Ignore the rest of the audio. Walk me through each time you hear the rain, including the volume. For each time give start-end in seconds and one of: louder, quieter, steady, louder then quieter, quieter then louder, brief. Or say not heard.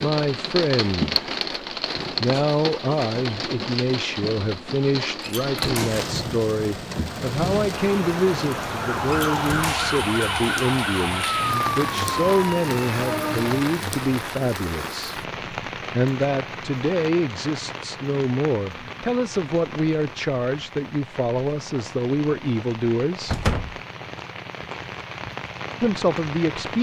0.0-26.7 quieter.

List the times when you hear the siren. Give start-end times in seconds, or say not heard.
8.8-13.6.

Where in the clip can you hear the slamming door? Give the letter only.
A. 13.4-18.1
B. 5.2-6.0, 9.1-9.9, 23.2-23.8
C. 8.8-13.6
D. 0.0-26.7
B.